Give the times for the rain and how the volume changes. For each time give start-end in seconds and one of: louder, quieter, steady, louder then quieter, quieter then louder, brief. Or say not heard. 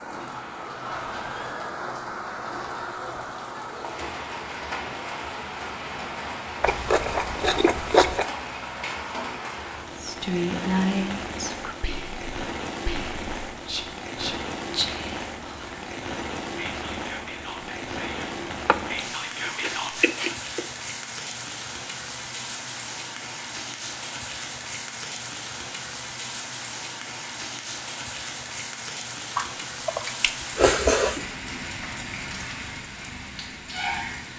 0.0-34.3 steady.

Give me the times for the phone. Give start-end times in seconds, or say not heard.
not heard.